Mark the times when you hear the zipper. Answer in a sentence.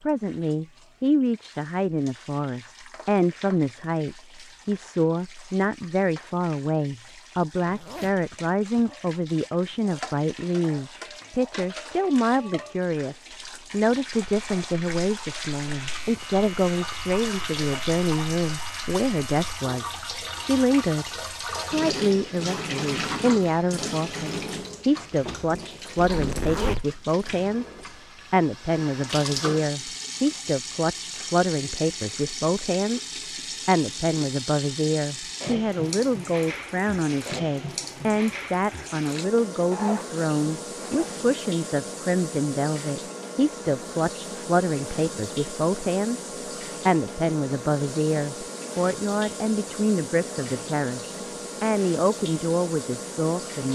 You can hear the zipper from 7.7 to 8.8 s, from 25.9 to 26.9 s and from 39.7 to 41.1 s.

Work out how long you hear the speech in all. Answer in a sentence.
You can hear the speech for 52 seconds altogether.